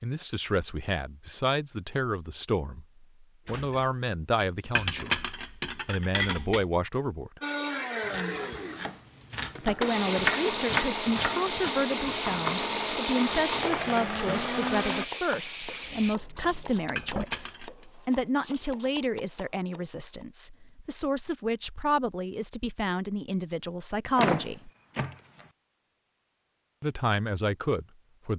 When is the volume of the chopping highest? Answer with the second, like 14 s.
10 s.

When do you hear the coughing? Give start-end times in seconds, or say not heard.
not heard.